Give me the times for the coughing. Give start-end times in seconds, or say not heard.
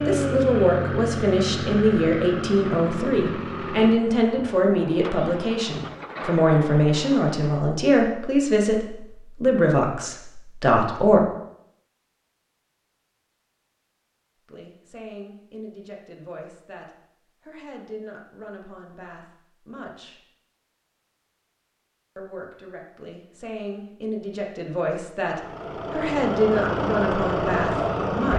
not heard.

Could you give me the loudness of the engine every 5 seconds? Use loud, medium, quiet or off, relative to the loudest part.
loud, medium, off, off, off, loud.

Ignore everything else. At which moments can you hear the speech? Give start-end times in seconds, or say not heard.
0.1-11.2, 14.4-20.2, 22.1-28.3.